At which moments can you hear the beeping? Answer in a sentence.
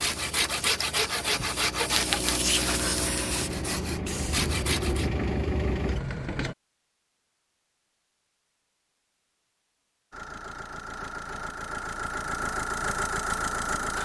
The beeping can't be heard in this clip.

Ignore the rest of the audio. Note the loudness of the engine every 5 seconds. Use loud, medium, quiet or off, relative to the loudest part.
medium, loud, loud.